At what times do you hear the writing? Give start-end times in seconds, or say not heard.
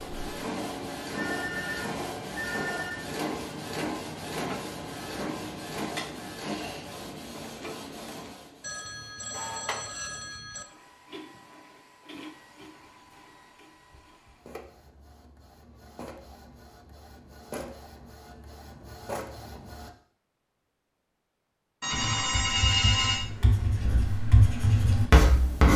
21.9-25.7.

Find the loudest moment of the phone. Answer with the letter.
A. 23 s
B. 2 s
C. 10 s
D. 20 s
A.